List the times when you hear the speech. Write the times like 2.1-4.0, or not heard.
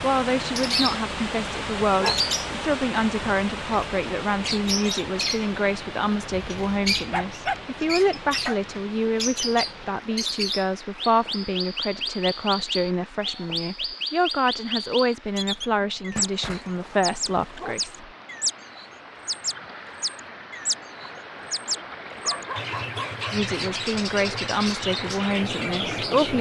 0.0-18.1, 23.3-26.3.